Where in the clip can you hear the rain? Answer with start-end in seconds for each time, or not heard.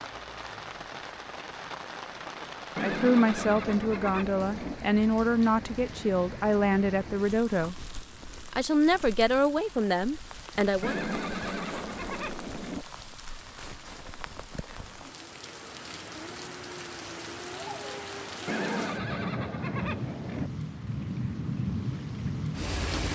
0.0-23.1.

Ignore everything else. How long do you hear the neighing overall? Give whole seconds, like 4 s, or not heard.
6 s.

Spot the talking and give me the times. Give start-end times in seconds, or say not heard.
2.8-7.8, 8.5-10.9.